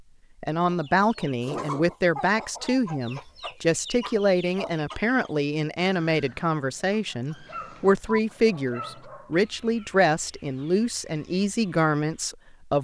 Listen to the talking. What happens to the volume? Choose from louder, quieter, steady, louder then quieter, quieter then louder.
steady.